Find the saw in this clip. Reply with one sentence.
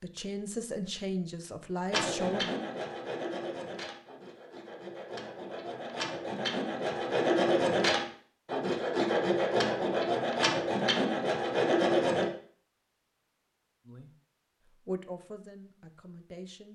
You can hear the saw from 1.9 to 12.3 s.